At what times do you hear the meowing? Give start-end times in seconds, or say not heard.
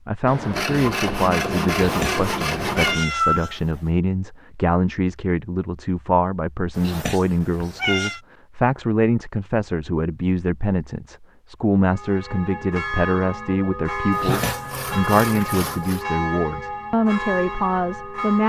1.7-3.5, 6.8-8.2, 14.1-14.8.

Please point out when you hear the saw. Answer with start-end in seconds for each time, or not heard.
0.2-3.0, 14.2-16.1.